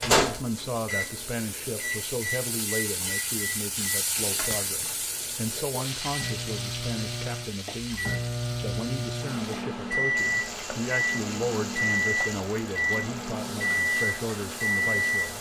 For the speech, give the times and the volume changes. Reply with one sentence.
You can hear the speech from 0.0 to 15.3 s, at a steady volume.